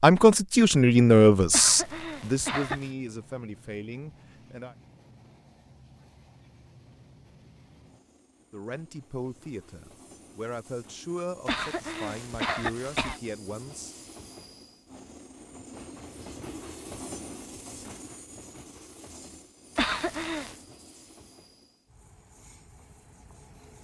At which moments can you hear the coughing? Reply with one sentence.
The coughing can be heard from 1.5 to 2.9 s, from 11.4 to 13.2 s and from 19.8 to 20.6 s.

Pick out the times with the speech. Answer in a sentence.
You can hear the speech from 0.0 to 4.8 s and from 8.5 to 13.9 s.